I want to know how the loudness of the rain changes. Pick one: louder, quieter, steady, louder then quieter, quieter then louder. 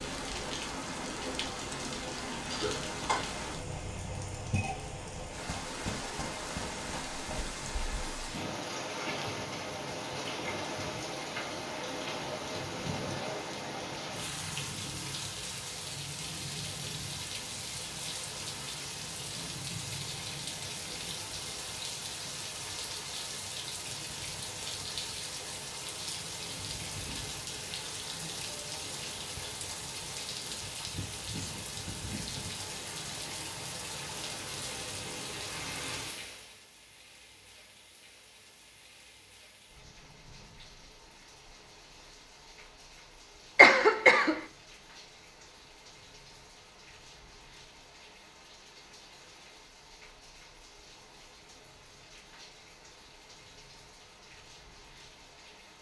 quieter.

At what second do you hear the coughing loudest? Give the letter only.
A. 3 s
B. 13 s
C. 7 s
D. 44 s
D.